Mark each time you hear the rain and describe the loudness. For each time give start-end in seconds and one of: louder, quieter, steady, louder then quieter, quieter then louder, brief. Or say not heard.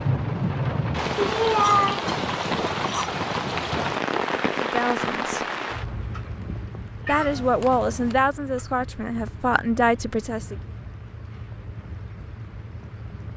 0.0-13.3 quieter.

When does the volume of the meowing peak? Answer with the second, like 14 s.
2 s.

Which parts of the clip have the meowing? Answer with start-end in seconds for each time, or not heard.
1.1-2.1, 7.0-8.2.